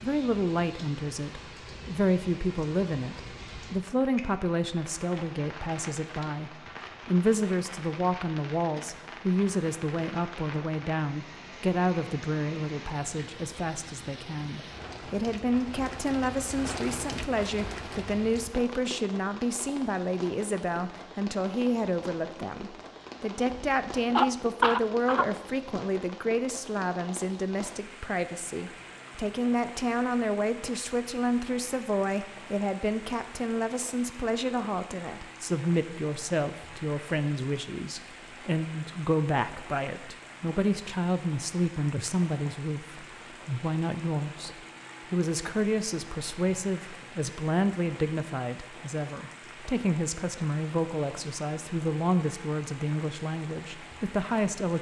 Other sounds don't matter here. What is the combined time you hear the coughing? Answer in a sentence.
You can hear the coughing for 2 seconds altogether.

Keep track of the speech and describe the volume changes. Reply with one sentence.
The loudness of the speech stays about the same.